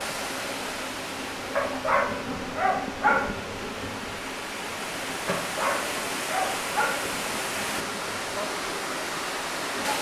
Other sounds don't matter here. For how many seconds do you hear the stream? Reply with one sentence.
You can hear the stream for 10 seconds altogether.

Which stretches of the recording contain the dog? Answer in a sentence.
The dog can be heard from 1.6 to 3.3 s and from 5.2 to 7.0 s.